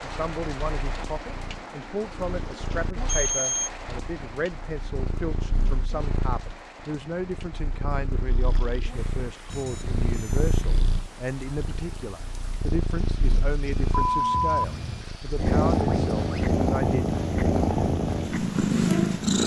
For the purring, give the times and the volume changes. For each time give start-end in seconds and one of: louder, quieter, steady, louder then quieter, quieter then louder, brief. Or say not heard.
0.0-19.4 louder.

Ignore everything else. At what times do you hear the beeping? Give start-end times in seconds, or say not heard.
3.0-3.7, 9.5-11.1, 13.8-15.1.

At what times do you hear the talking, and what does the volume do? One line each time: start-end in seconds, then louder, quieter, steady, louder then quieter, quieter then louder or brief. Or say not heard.
0.0-17.1 steady.